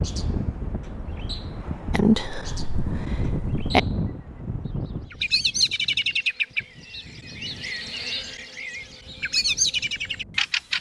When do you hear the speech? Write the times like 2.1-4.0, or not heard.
1.9-3.8.